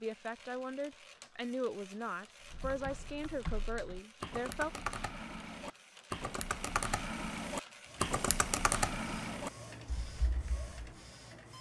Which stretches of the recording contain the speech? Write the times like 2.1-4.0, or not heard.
0.0-4.7.